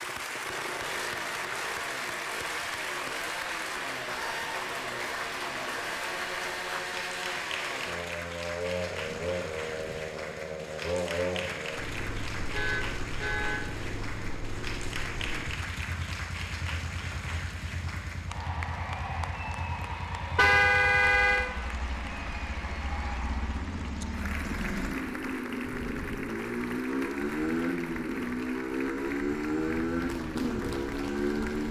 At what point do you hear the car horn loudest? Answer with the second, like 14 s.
21 s.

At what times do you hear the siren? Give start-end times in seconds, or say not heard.
not heard.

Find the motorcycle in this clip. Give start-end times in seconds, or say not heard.
0.0-31.6.